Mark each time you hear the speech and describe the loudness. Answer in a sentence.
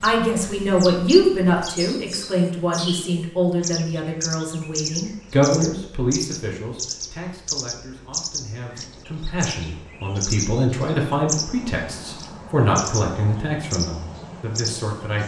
You can hear the speech from 0.0 to 15.2 s, getting quieter then louder.